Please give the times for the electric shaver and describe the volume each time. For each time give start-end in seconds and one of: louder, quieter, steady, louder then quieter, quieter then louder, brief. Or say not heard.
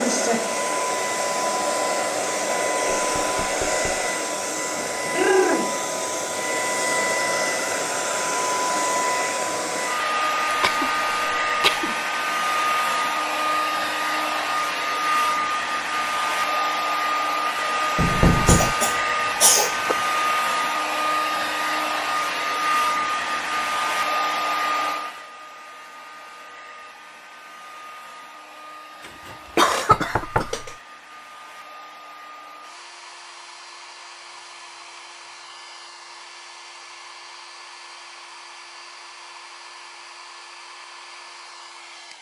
not heard.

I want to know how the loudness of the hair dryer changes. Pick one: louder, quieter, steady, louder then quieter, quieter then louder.
quieter.